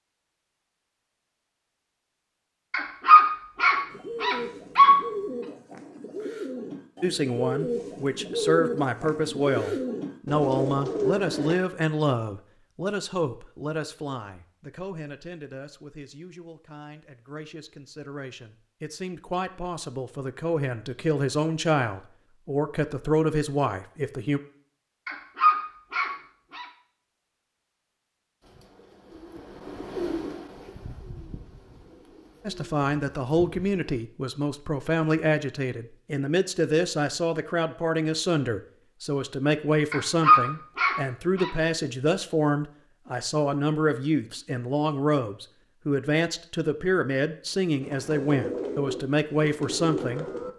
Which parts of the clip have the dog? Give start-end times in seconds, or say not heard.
2.7-5.0, 25.1-26.6, 39.9-41.5.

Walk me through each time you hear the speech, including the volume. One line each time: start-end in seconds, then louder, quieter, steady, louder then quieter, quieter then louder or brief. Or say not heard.
7.0-24.4 quieter then louder
32.5-50.2 steady.